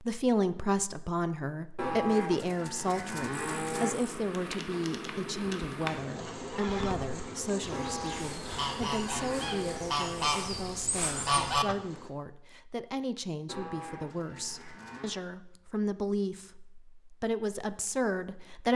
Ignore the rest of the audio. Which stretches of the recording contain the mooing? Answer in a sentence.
The mooing can be heard from 1.8 to 4.0 s, from 7.7 to 9.9 s and from 13.4 to 15.2 s.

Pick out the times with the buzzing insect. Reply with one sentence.
You can hear the buzzing insect from 3.3 to 12.1 s.